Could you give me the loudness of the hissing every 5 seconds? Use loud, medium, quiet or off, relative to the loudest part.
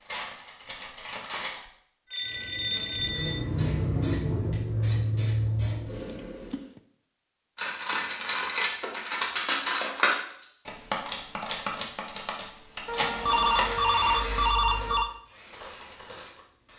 loud, loud, medium, quiet.